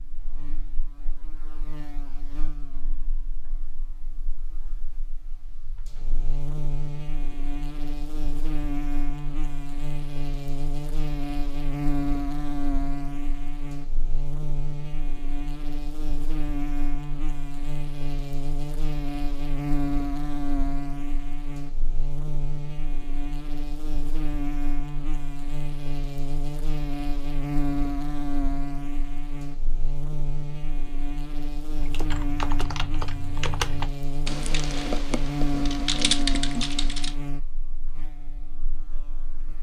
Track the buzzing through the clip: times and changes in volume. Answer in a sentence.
You can hear the buzzing from 0.0 to 39.5 s, getting louder.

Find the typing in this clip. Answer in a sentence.
You can hear the typing from 31.8 to 37.1 s.